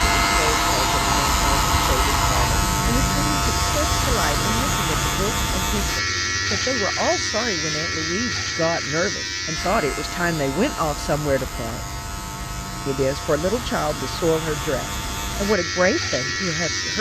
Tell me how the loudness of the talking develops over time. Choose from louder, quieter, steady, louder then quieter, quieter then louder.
louder.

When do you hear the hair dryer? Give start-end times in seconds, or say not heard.
0.0-2.6.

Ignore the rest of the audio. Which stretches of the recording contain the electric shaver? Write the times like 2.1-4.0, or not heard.
0.0-16.9.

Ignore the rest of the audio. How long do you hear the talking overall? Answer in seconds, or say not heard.
16 s.